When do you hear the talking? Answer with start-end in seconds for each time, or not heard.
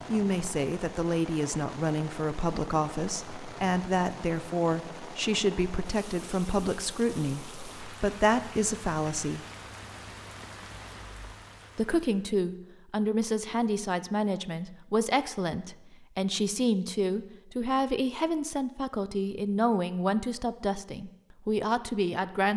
0.1-9.4, 11.8-22.5.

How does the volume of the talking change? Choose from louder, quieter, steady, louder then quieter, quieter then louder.
steady.